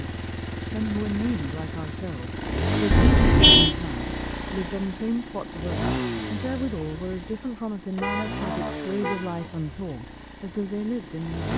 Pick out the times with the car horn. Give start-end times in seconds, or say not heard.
2.9-3.8, 8.0-9.4.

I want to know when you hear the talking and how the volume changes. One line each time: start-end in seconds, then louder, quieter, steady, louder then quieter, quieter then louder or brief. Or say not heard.
0.0-11.5 steady.